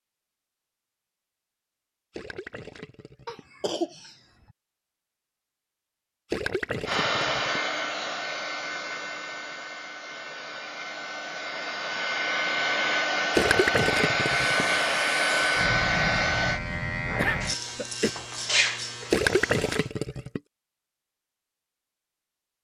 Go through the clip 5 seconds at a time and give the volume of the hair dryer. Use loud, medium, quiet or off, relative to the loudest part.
off, medium, loud, loud, off.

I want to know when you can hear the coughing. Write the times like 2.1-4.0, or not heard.
3.2-4.2, 17.1-18.1.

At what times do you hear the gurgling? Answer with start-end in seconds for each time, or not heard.
2.1-3.5, 6.3-7.6, 13.3-14.7, 19.1-20.4.